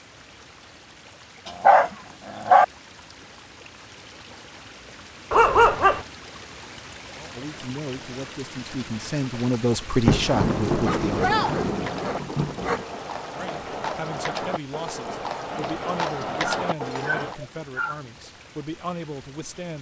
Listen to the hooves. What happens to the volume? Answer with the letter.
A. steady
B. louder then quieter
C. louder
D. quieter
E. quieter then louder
C.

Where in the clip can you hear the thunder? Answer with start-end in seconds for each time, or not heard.
10.1-12.8.